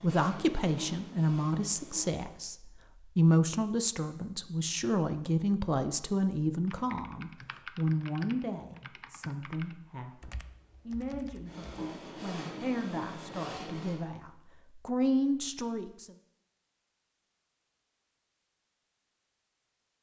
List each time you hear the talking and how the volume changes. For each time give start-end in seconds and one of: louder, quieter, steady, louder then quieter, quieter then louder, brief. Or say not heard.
0.0-2.5 brief
3.1-16.1 quieter then louder.